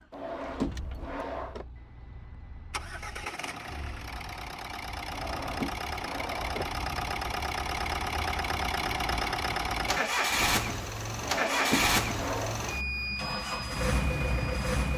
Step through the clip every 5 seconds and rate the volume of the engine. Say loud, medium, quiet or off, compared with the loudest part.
quiet, loud, loud.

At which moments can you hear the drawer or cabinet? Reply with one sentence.
You can hear the drawer or cabinet from 0.1 to 1.6 s, from 5.1 to 6.8 s and from 11.2 to 12.6 s.